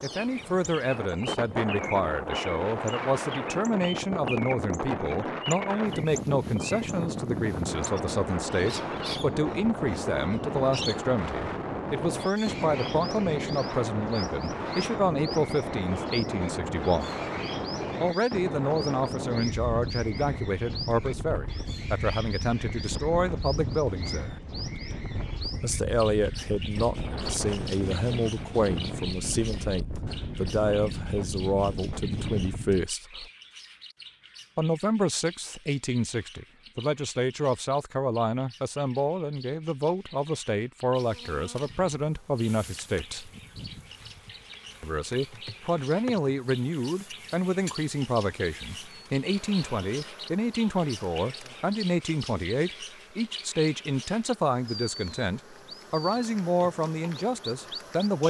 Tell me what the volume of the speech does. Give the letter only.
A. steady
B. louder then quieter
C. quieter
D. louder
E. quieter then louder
A.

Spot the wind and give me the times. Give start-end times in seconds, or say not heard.
0.0-32.9.